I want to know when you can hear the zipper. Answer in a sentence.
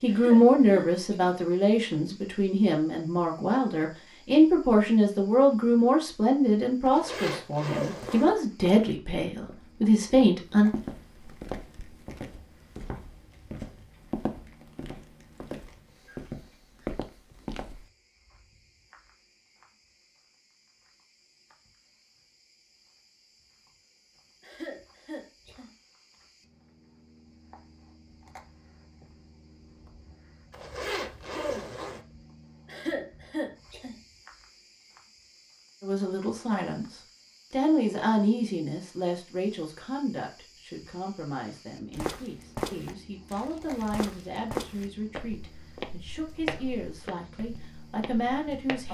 You can hear the zipper from 6.8 to 8.3 s and from 30.5 to 32.0 s.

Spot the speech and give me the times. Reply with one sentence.
You can hear the speech from 0.0 to 10.7 s and from 35.8 to 48.9 s.